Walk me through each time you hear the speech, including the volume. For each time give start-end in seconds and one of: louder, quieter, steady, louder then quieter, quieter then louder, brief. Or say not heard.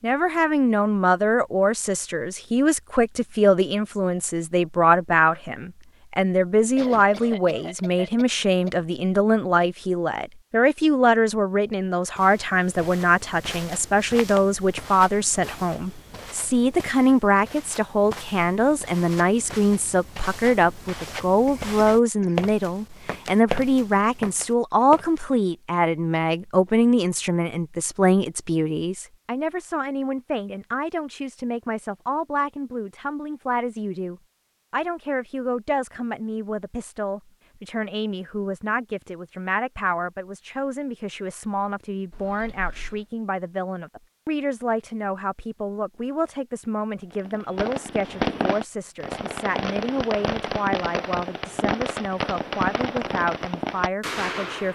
0.0-54.7 quieter.